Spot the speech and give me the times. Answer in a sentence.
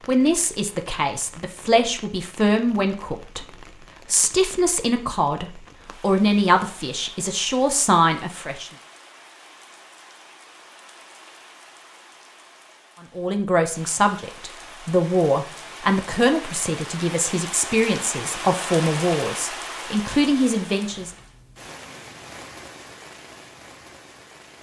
The speech can be heard from 0.1 to 3.5 s, from 4.0 to 8.7 s and from 13.2 to 21.1 s.